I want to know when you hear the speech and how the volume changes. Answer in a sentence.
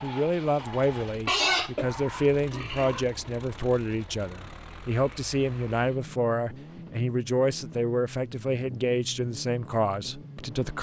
The speech can be heard from 0.0 to 10.7 s, at a steady volume.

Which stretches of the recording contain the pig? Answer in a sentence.
The pig can be heard from 1.2 to 3.0 s.